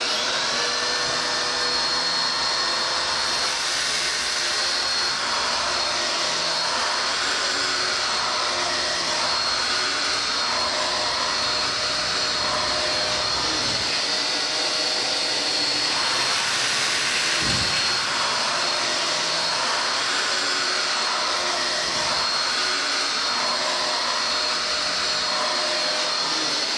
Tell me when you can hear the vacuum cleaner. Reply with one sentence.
You can hear the vacuum cleaner from 0.0 to 26.7 s.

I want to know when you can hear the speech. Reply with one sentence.
You can't hear the speech here.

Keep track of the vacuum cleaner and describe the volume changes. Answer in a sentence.
The volume of the vacuum cleaner stays about the same.